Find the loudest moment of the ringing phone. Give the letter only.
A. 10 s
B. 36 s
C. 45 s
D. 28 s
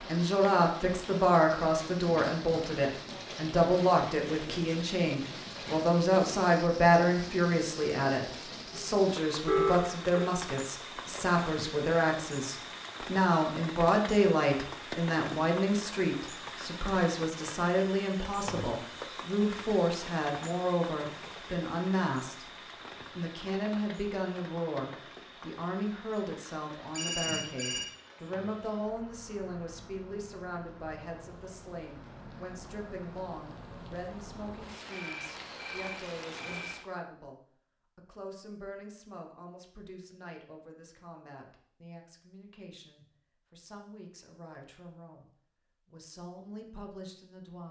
A.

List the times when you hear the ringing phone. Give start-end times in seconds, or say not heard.
9.4-10.2, 26.9-27.9, 34.9-36.8.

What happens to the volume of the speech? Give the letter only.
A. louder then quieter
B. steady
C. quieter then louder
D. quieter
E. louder
D.